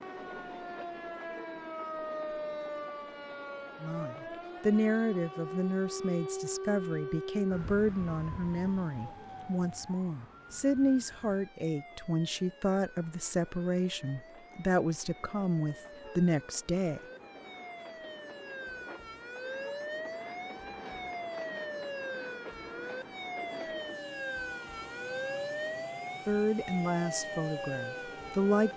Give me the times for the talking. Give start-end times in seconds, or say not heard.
3.8-17.0, 26.2-28.7.